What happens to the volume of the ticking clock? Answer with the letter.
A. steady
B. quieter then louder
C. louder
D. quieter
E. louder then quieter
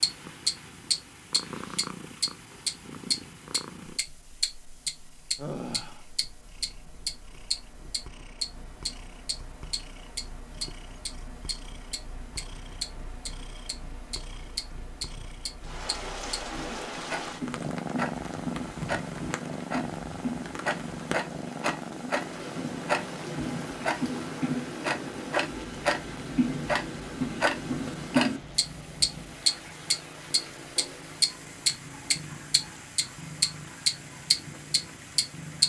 B.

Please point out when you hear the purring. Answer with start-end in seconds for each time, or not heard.
0.0-35.6.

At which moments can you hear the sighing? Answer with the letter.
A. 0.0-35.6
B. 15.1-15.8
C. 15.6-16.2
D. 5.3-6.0
D.